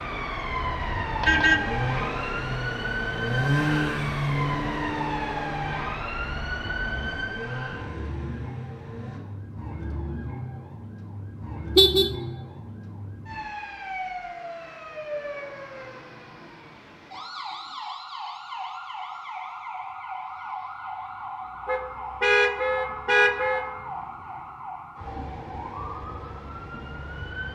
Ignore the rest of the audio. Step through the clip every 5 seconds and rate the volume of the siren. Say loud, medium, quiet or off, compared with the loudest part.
loud, loud, medium, medium, medium, medium.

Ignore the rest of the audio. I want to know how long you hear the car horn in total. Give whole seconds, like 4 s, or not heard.
3 s.